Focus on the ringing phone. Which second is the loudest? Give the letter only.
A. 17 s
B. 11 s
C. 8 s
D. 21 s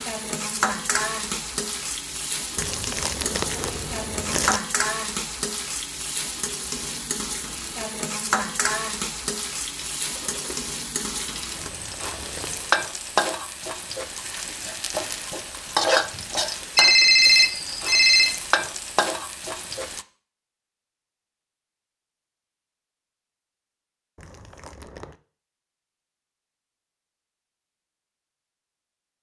A.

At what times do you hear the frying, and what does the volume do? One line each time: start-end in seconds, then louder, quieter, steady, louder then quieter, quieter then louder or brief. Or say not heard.
0.0-20.1 steady.